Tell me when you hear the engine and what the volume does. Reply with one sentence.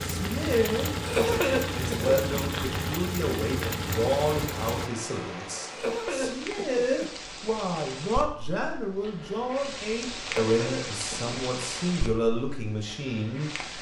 You can hear the engine from 0.0 to 4.9 s, at a steady volume.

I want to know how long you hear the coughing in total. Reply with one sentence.
You can hear the coughing for 4 seconds altogether.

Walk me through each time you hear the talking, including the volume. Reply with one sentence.
The talking can be heard from 0.0 to 13.7 s, at a steady volume.